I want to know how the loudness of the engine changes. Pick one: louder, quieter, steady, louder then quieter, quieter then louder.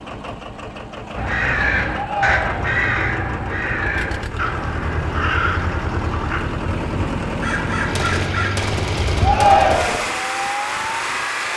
louder.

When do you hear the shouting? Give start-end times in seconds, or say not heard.
1.9-2.6, 9.2-10.1.